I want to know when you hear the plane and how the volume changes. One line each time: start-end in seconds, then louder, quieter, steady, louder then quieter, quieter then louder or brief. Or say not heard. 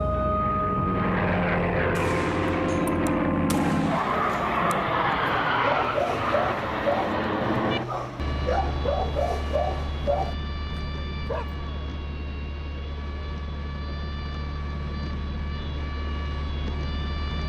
0.0-17.4 quieter.